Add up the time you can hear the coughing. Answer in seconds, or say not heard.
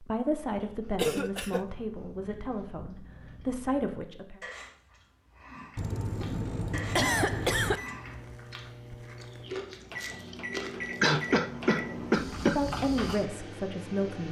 5 s.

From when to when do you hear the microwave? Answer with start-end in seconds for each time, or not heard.
7.6-14.2.